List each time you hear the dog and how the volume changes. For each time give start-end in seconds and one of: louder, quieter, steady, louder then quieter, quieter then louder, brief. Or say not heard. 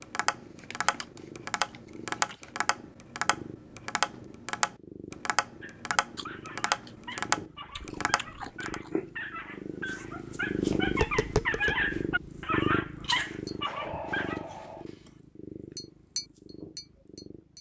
5.6-14.4 louder.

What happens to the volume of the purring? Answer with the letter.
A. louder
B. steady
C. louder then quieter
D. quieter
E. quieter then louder
C.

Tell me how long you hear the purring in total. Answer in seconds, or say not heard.
17 s.